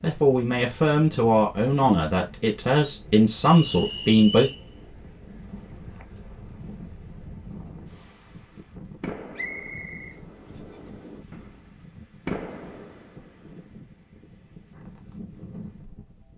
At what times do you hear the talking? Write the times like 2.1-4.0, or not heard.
0.0-4.5.